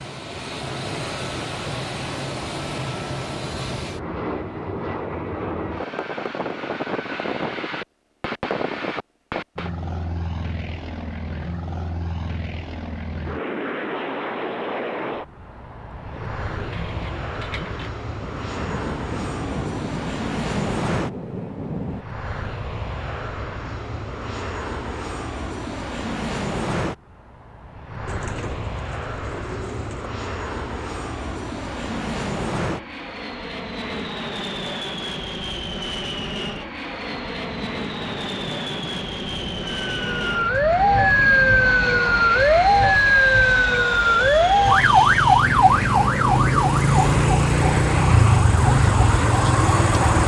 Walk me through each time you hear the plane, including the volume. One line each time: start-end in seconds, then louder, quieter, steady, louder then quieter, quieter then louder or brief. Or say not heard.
0.0-50.2 steady.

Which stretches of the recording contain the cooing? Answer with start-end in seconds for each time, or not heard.
16.1-17.9, 28.1-30.1.